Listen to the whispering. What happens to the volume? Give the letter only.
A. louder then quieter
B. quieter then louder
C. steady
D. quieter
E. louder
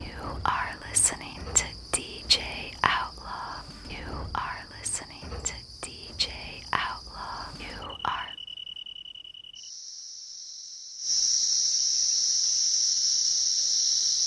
D.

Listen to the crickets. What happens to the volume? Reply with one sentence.
The volume of the crickets goes up.